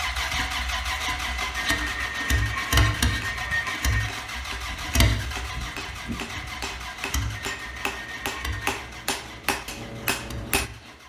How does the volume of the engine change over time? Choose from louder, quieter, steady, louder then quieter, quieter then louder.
quieter.